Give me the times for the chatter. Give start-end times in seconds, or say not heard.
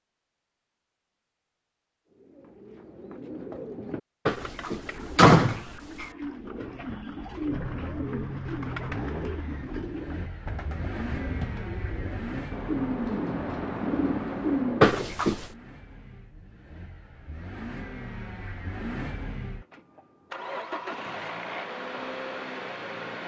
not heard.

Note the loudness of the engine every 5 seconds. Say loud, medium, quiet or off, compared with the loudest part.
off, loud, loud, medium, loud.